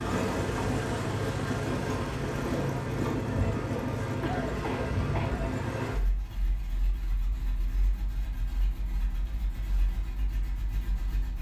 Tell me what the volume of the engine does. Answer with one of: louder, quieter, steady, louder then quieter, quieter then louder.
quieter.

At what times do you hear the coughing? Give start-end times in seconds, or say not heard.
4.2-5.4.